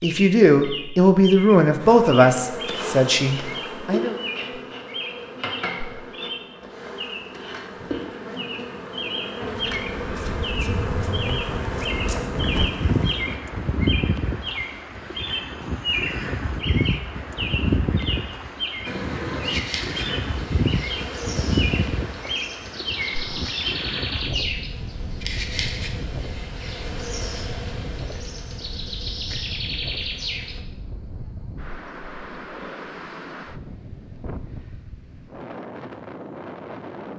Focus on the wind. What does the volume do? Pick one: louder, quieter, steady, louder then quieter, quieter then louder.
quieter.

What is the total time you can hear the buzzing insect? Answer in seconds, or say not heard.
23 s.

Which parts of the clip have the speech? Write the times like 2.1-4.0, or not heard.
0.0-4.2.